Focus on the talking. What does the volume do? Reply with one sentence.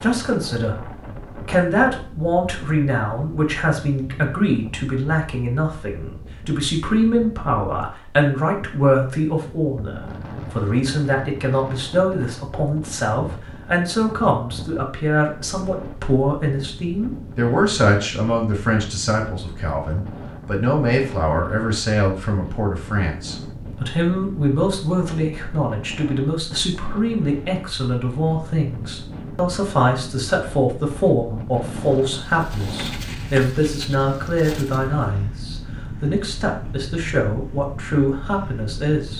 The volume of the talking stays about the same.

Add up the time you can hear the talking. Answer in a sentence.
You can hear the talking for 39 seconds altogether.